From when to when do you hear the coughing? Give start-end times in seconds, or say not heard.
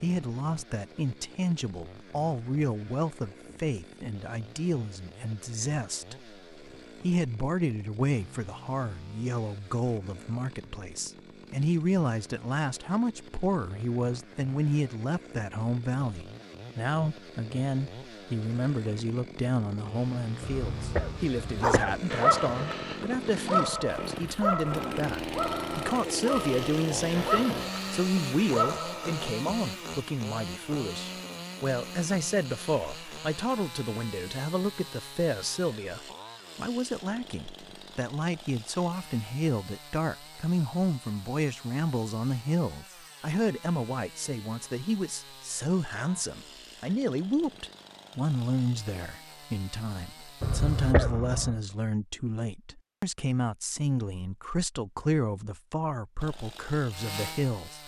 20.4-22.0, 50.4-51.6.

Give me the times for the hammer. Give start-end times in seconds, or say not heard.
not heard.